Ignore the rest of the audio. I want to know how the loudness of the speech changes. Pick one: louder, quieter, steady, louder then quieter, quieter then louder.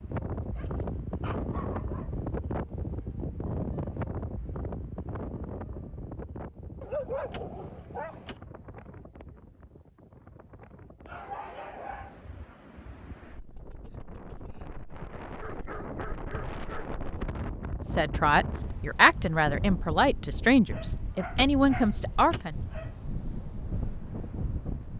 quieter then louder.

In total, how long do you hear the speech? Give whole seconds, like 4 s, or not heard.
5 s.